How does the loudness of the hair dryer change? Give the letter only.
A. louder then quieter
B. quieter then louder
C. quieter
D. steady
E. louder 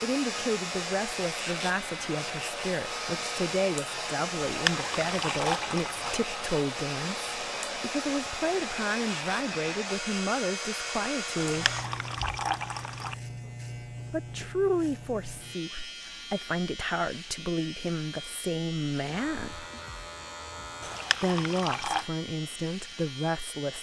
D.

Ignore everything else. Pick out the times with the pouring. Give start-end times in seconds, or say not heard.
4.5-6.2, 11.3-13.2, 20.8-22.1.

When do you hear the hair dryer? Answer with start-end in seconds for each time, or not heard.
0.0-11.9.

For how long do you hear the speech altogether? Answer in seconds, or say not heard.
20 s.